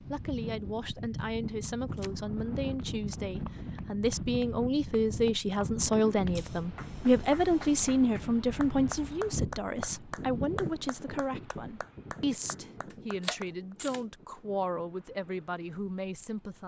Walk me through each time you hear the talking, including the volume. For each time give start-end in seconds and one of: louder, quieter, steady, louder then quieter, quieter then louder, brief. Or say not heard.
0.0-16.6 louder then quieter.